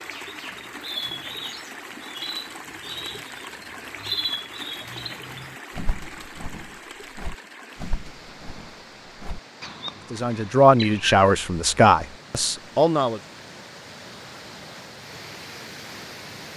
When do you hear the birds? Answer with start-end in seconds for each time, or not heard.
0.0-11.2.